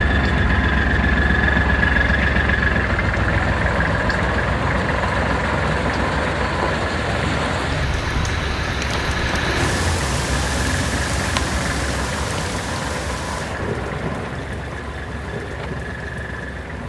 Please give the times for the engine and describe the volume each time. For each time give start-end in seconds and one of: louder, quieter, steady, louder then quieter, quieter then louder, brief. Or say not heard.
0.0-16.8 quieter.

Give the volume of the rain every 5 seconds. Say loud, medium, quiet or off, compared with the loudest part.
medium, loud, loud, medium.